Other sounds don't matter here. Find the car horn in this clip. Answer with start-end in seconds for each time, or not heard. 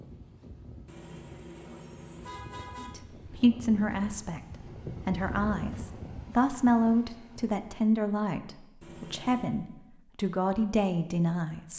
0.8-2.9, 8.8-9.5.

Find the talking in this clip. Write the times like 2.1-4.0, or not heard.
2.8-4.4, 5.0-11.7.